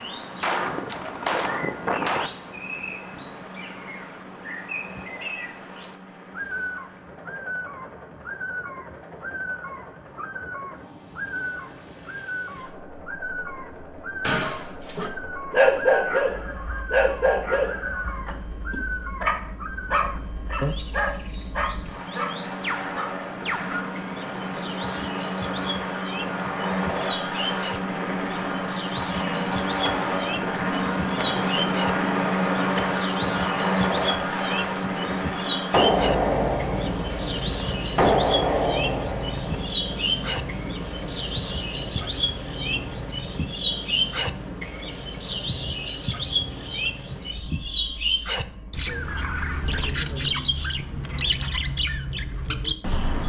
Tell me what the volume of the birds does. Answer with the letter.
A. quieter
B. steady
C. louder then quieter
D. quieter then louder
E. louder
E.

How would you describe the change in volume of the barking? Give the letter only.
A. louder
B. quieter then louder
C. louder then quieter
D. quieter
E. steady
D.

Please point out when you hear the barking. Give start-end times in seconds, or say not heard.
14.2-23.9.